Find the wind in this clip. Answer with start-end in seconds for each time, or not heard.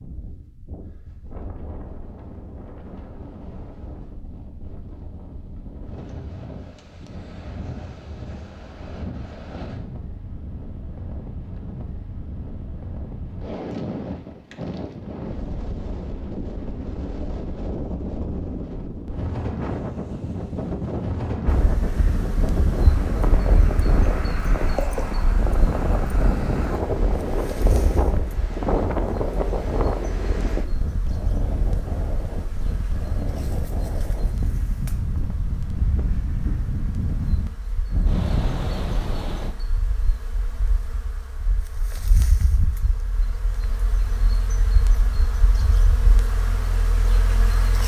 0.0-39.5.